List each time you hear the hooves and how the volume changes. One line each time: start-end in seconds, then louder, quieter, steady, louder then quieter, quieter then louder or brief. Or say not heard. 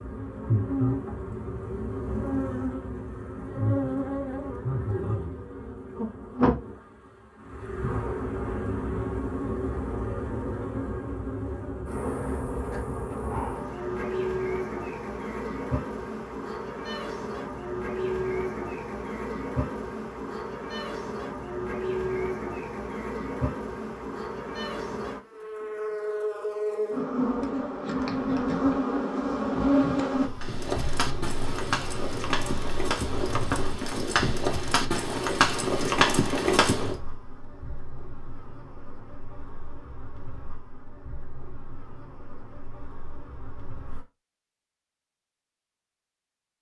30.4-37.0 louder.